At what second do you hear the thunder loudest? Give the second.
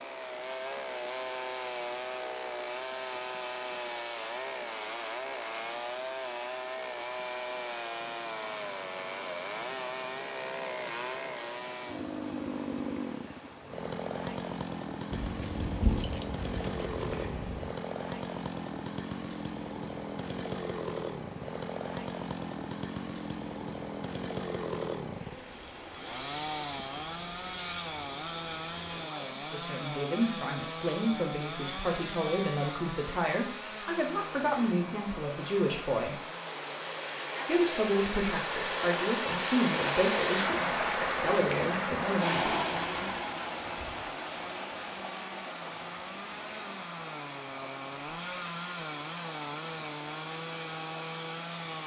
16 s.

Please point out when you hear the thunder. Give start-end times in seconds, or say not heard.
15.1-17.8.